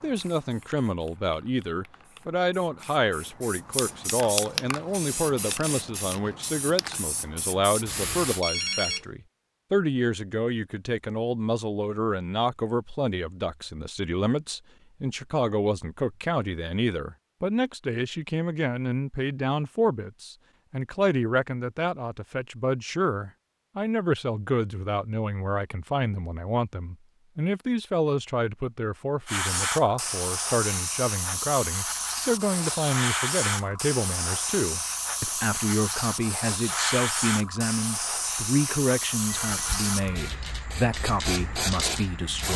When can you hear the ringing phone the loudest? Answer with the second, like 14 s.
9 s.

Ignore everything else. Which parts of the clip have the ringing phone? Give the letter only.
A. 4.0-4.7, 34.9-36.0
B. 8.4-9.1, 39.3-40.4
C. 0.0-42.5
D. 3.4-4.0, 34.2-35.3
B.